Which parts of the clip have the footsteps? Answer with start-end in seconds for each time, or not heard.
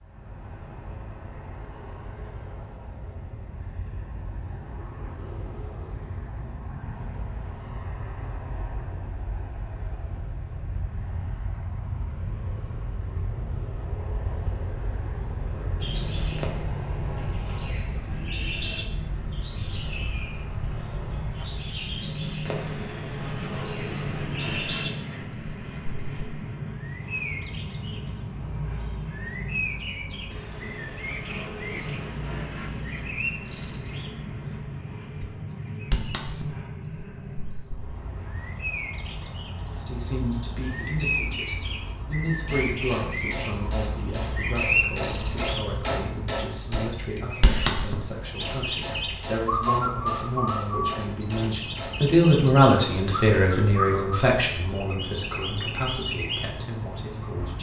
not heard.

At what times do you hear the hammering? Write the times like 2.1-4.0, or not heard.
42.4-52.1.